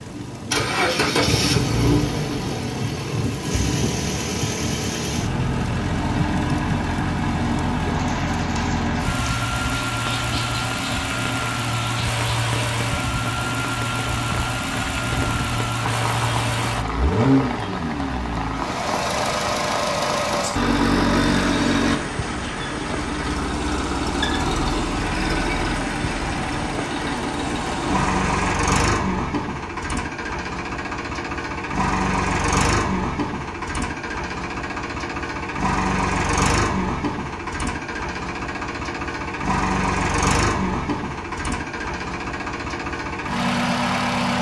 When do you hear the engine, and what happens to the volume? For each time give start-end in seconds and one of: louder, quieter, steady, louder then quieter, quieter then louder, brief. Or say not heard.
0.0-44.3 steady.